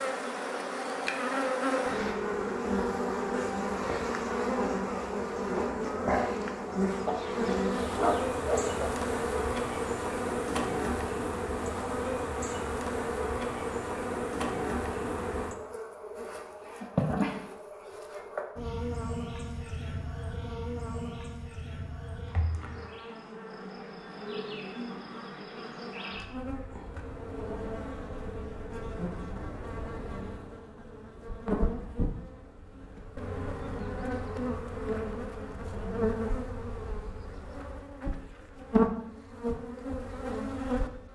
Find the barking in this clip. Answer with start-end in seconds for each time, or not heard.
7.0-8.9.